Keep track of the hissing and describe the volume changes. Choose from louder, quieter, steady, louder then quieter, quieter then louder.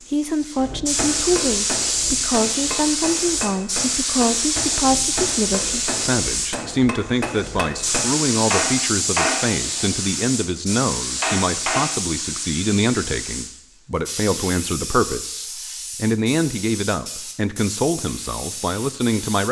quieter.